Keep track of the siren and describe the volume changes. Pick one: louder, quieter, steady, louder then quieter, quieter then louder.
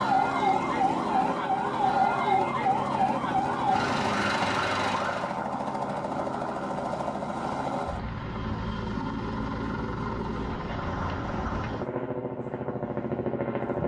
steady.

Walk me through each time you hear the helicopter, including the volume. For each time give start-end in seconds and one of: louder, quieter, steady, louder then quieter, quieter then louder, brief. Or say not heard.
0.0-13.8 steady.